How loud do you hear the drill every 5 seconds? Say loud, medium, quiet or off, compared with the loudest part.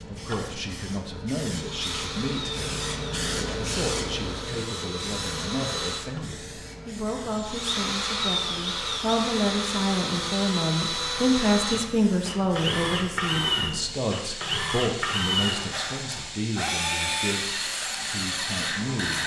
medium, loud, loud, loud.